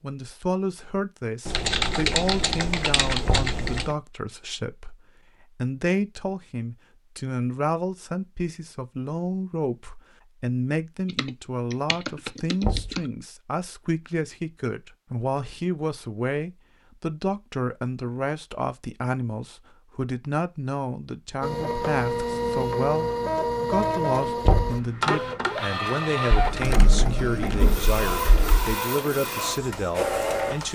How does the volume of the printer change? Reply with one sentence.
The volume of the printer stays about the same.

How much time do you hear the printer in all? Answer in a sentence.
You can hear the printer for 9 seconds altogether.